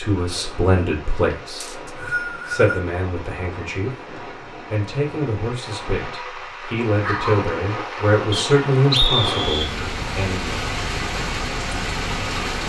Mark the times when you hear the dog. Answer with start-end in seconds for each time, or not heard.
7.0-7.6.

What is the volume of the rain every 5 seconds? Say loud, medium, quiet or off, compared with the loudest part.
medium, loud, loud.